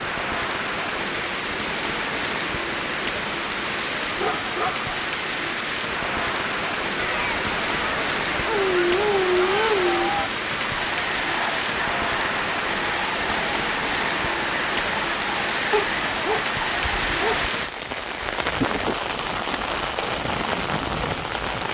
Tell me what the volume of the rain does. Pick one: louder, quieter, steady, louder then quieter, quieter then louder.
steady.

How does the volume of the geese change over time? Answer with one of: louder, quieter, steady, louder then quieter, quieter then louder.
steady.